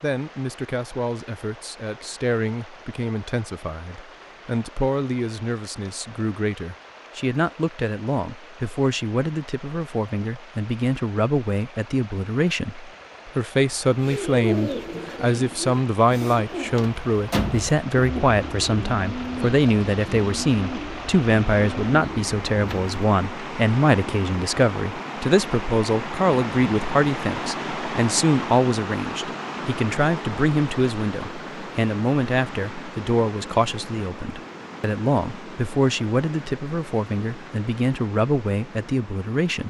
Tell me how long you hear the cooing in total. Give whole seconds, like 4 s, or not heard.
9 s.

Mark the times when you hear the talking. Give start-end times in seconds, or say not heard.
0.0-39.6.